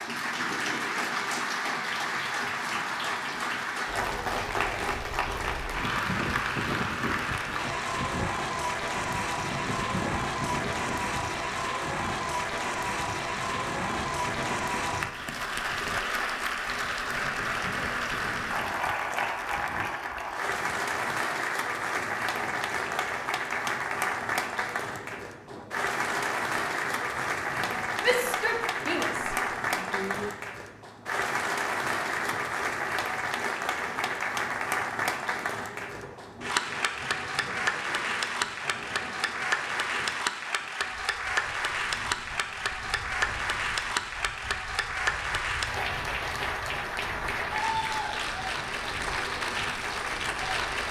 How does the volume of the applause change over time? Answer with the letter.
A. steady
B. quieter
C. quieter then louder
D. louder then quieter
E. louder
A.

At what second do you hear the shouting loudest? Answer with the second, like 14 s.
28 s.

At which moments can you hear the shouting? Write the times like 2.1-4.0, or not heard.
28.0-30.3.